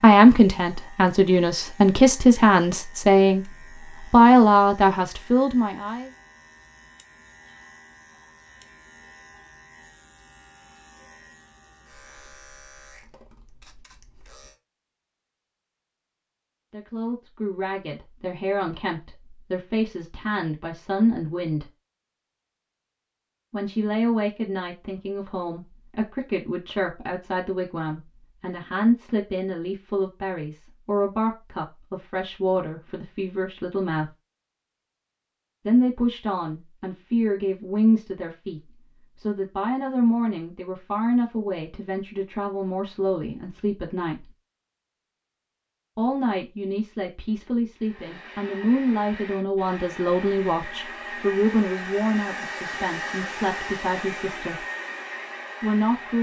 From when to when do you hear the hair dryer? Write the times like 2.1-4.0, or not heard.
47.8-56.1.